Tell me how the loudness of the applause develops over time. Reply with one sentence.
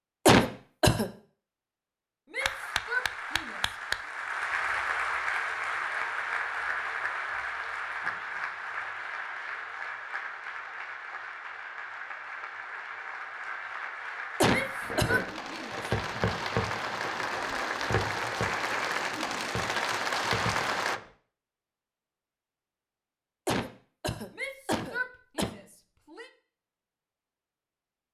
The loudness of the applause goes down, then up.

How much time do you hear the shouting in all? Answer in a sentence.
The shouting can be heard for 5 seconds in total.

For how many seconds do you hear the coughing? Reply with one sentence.
The coughing can be heard for 4 seconds in total.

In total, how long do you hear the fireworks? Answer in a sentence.
The fireworks can be heard for 6 seconds in total.